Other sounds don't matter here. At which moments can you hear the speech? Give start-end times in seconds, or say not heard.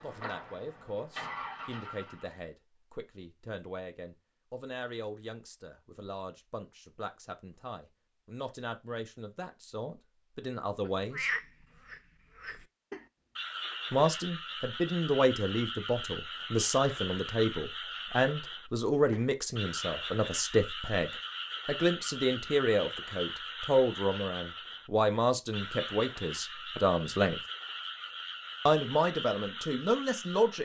0.0-11.3, 13.9-27.4, 28.6-30.6.